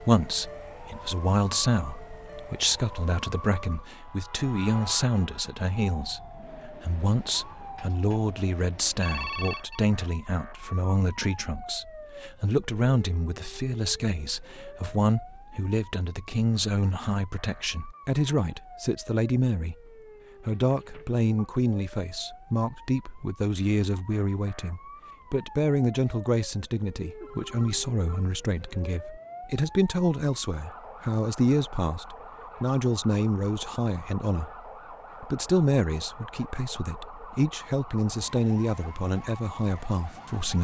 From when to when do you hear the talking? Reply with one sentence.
The talking can be heard from 0.0 to 40.5 s.